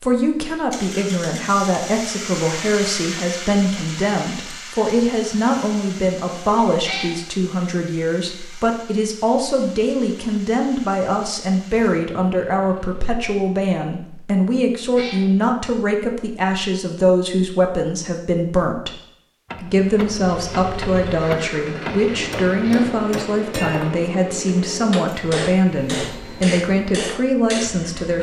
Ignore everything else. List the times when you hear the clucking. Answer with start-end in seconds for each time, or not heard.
not heard.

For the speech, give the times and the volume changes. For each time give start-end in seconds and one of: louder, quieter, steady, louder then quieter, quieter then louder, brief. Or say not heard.
0.0-18.9 steady
19.6-28.1 steady.